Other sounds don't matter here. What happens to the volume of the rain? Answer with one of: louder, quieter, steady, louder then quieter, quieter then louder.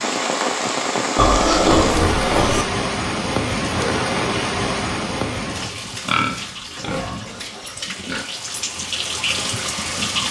quieter then louder.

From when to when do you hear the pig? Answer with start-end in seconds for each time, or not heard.
1.1-2.6, 5.5-8.2.